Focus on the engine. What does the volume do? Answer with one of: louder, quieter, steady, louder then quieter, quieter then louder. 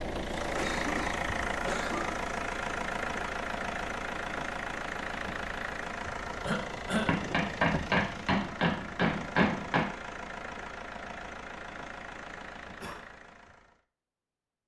quieter.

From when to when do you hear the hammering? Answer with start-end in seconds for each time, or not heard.
7.0-9.9.